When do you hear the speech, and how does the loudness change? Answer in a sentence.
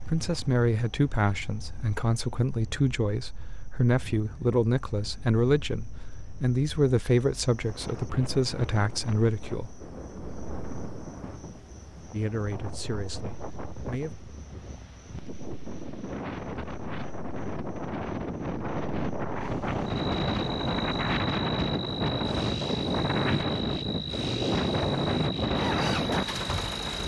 You can hear the speech from 0.1 to 9.7 s, at a steady volume; and briefly from 12.1 to 14.2 s.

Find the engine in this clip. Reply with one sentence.
The engine can be heard from 19.4 to 27.0 s.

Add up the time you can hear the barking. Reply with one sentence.
The barking can't be heard in this clip.